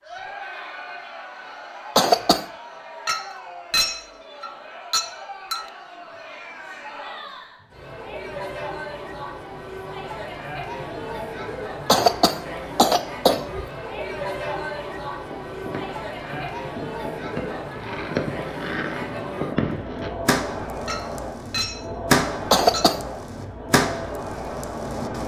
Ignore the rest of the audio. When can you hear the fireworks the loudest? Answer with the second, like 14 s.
22 s.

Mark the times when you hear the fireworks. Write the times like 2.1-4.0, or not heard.
15.2-25.2.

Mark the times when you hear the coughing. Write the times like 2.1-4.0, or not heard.
1.9-2.5, 11.8-13.7, 22.5-23.0.